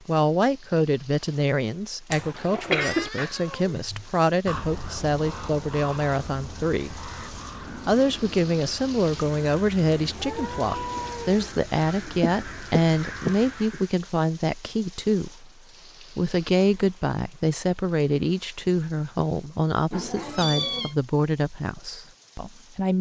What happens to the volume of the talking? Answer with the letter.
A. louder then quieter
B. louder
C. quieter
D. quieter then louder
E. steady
E.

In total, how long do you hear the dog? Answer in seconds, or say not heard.
not heard.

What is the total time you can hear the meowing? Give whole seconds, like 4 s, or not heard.
4 s.